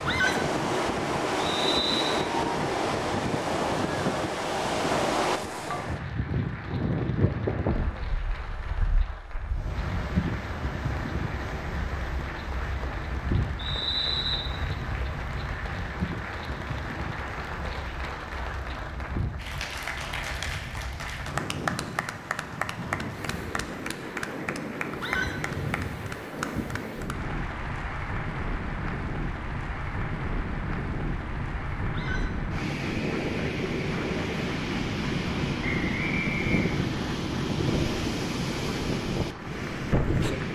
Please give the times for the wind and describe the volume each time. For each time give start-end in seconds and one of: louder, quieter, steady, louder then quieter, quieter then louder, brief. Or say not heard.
0.0-40.4 quieter then louder.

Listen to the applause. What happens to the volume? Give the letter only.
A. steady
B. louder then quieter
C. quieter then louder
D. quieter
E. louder
B.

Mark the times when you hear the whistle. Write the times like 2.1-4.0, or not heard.
1.4-2.1, 13.6-14.4, 35.6-37.1.